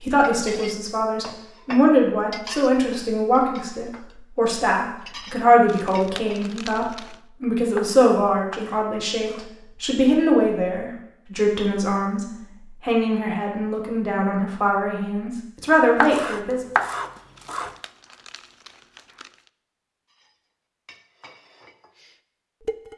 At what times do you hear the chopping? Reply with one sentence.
The chopping can be heard from 7.8 to 9.5 s and from 16.0 to 17.7 s.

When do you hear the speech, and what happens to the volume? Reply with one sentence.
You can hear the speech from 0.0 to 16.6 s, at a steady volume.